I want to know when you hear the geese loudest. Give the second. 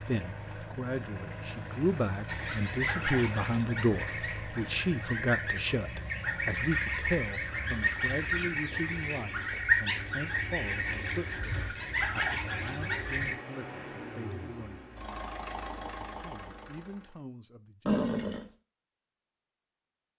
10 s.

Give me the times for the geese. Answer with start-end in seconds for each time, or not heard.
2.2-13.3.